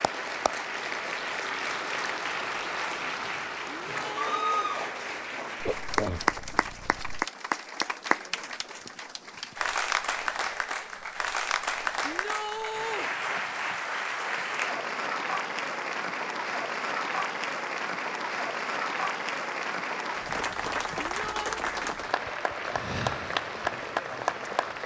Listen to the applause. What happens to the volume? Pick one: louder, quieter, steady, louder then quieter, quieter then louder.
steady.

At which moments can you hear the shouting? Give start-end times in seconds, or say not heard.
3.8-4.8, 12.0-13.1, 21.1-21.6.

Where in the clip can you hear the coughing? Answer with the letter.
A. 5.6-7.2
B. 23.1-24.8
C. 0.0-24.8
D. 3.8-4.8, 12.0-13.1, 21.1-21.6
A.